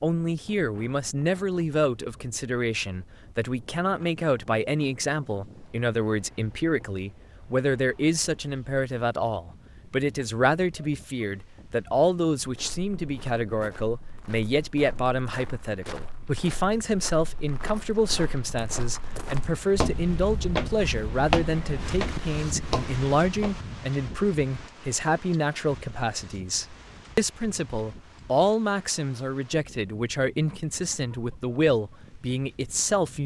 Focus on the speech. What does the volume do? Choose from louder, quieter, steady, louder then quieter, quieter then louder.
steady.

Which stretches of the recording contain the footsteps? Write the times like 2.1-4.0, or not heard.
12.4-23.6.